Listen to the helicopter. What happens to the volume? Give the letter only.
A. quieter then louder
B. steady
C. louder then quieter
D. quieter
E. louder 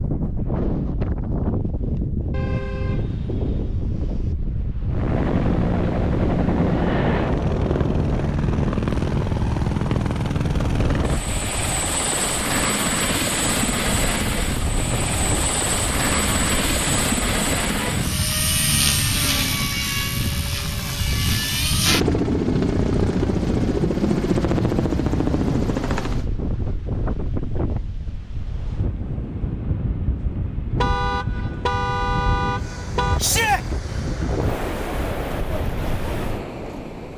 B.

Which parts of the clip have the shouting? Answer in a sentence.
The shouting can be heard from 33.1 to 33.6 s.